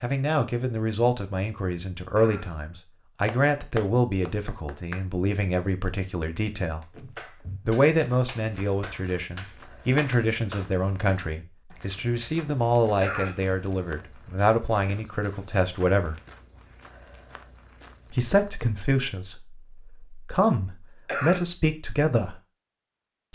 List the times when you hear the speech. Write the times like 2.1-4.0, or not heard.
0.0-6.8, 7.7-16.2, 18.1-22.4.